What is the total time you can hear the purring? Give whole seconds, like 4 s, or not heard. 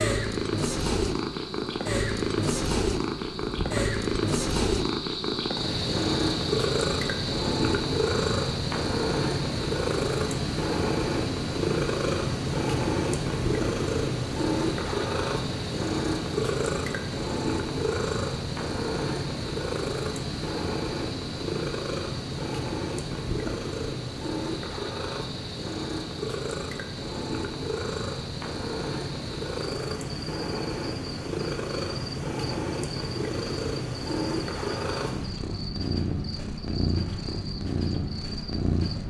39 s.